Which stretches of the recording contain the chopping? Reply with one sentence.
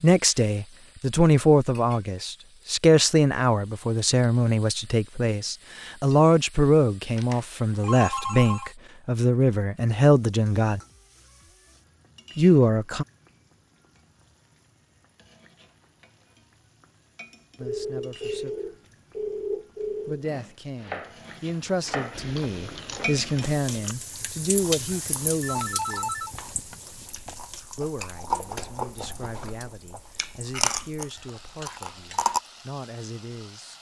The chopping can be heard from 20.2 to 22.4 s.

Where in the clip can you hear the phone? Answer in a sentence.
You can hear the phone from 7.2 to 8.7 s, from 17.6 to 20.2 s and from 25.4 to 26.8 s.